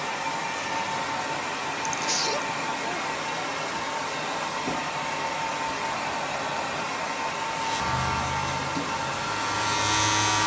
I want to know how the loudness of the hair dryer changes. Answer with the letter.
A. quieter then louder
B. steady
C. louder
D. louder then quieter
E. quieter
B.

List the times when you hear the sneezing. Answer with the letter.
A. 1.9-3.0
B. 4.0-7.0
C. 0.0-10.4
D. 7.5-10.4
A.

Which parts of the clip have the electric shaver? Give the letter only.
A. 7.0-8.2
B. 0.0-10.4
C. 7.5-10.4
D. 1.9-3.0
C.